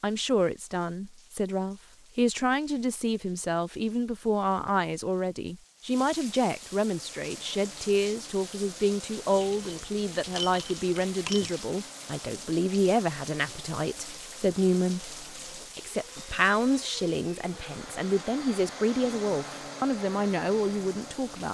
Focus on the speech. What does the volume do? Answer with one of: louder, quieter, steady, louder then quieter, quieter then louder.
steady.